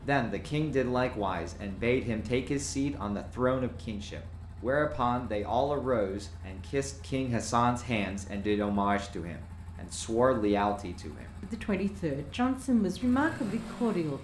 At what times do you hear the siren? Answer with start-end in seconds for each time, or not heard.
not heard.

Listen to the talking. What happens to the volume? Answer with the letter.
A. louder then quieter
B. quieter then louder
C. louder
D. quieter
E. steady
E.